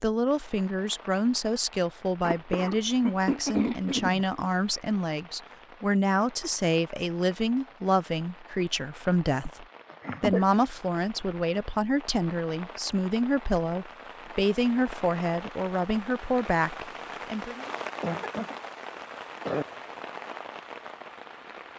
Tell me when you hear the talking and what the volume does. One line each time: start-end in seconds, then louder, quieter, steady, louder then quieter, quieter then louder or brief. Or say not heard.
0.0-17.6 steady.